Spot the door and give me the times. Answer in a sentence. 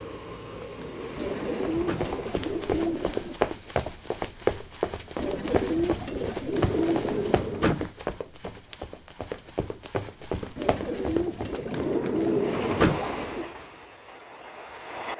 The door can be heard from 0.6 to 2.1 s, from 6.3 to 7.9 s and from 11.5 to 13.0 s.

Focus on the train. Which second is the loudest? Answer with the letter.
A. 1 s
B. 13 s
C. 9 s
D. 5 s
B.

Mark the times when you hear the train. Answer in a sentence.
The train can be heard from 0.0 to 2.8 s and from 12.3 to 15.1 s.